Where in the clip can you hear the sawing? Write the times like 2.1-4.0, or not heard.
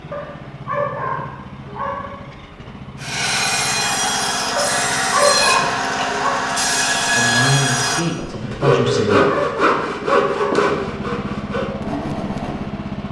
3.0-12.7.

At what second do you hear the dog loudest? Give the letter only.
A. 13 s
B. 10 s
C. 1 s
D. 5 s
D.